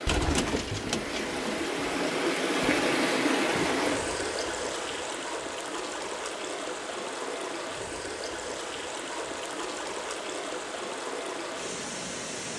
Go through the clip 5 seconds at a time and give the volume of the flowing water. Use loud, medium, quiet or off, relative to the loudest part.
loud, medium, medium.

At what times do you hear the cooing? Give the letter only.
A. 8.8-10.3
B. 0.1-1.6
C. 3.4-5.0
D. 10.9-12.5
B.